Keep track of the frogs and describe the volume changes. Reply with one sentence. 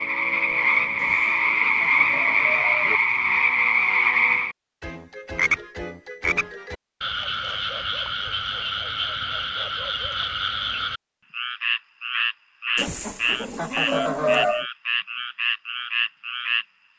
The volume of the frogs goes down.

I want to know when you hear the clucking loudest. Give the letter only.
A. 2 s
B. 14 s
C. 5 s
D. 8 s
B.